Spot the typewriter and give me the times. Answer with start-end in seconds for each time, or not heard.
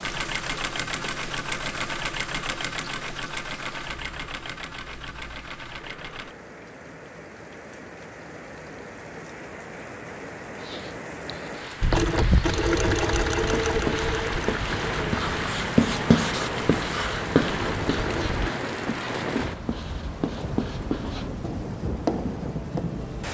not heard.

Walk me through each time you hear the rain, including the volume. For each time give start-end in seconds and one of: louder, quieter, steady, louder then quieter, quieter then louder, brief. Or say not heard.
0.0-23.2 louder.